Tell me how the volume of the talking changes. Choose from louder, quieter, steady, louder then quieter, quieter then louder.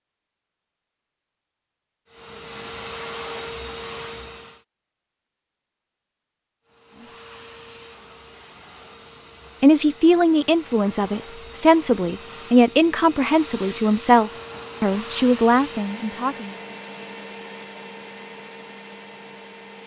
steady.